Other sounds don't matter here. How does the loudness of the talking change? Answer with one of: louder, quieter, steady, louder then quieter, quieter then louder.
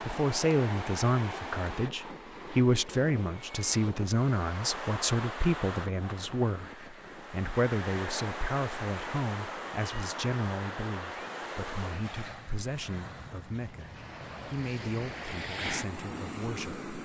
quieter.